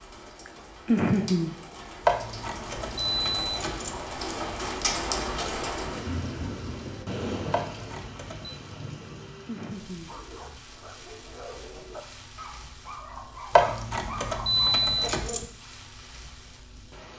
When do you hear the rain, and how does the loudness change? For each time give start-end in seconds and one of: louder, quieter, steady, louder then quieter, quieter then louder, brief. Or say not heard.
0.0-17.1 louder then quieter.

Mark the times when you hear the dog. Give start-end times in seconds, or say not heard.
10.1-15.4.